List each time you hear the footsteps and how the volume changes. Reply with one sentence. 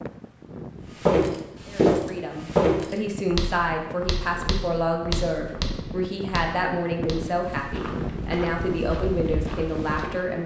You can hear the footsteps from 1.0 to 10.2 s, getting quieter.